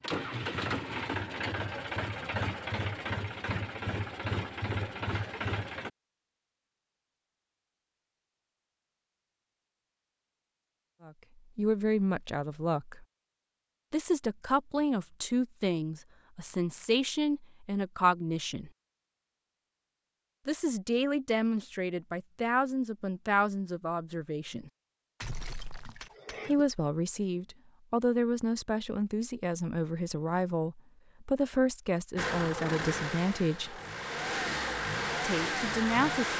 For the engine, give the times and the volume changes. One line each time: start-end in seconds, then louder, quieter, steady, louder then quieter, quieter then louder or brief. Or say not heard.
0.0-5.9 steady
32.1-36.3 quieter then louder.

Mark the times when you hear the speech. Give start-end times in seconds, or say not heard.
11.1-13.1, 13.9-18.7, 20.4-24.7, 26.4-33.8, 35.2-36.3.